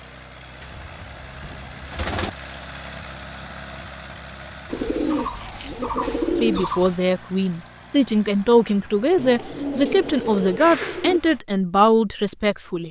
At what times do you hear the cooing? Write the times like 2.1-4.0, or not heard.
0.6-2.3, 4.7-7.0, 9.2-11.2.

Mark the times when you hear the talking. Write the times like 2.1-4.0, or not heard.
6.4-12.8.